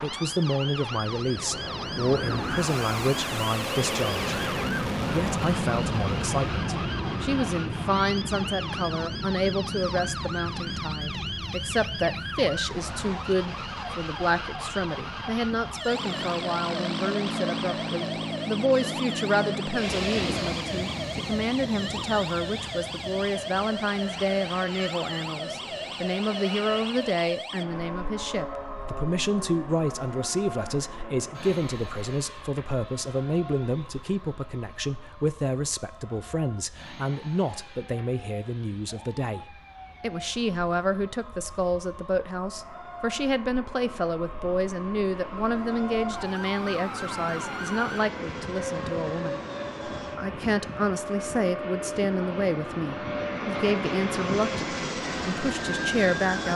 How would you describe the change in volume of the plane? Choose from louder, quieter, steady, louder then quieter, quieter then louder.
quieter then louder.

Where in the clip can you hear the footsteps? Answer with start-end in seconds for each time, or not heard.
not heard.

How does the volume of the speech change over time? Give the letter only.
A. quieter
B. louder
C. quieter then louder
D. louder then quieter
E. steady
E.